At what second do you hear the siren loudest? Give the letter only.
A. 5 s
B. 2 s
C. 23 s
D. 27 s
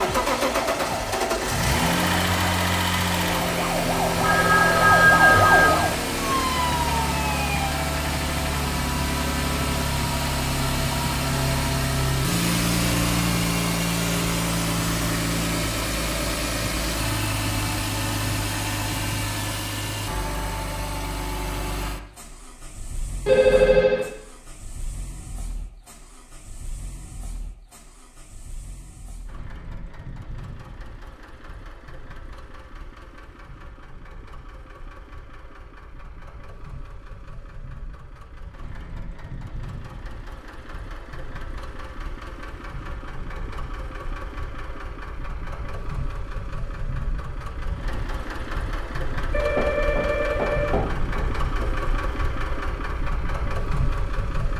A.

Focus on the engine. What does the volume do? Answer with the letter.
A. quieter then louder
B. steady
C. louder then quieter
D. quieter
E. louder
A.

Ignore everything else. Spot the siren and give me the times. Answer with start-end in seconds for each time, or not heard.
0.1-7.8.